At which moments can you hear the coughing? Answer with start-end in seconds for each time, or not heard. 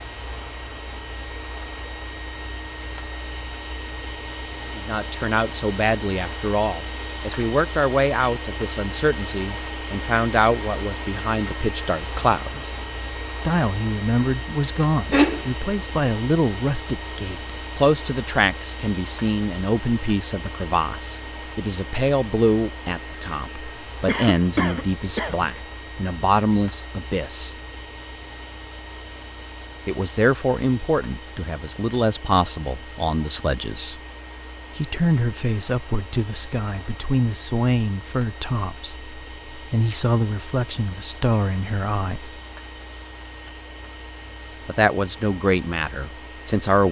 15.1-15.8, 24.1-25.6.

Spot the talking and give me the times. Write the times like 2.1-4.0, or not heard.
4.8-12.7, 13.4-27.5, 29.9-34.0, 34.8-42.4, 44.6-46.8.